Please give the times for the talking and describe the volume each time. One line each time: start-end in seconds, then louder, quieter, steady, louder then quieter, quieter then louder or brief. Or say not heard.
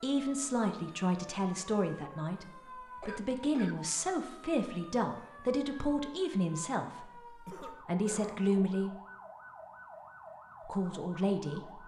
0.0-8.9 steady
10.7-11.8 brief.